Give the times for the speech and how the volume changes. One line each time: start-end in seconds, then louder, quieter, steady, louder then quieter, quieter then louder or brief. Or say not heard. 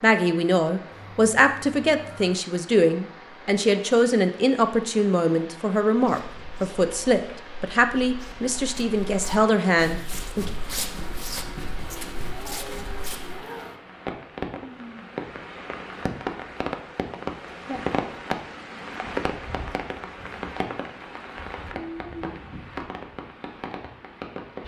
0.0-10.5 steady.